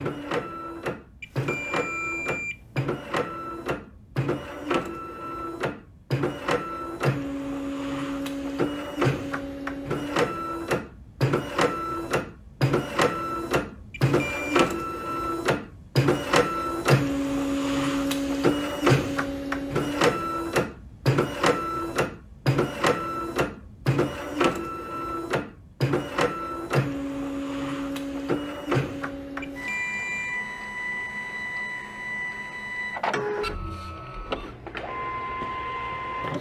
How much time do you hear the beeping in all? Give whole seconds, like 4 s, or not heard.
3 s.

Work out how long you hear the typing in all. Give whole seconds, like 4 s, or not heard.
not heard.